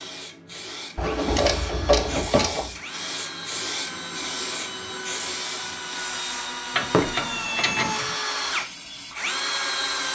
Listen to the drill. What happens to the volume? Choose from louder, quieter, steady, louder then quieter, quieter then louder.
louder.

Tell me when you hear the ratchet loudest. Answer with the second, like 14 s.
2 s.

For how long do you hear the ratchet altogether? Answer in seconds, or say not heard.
3 s.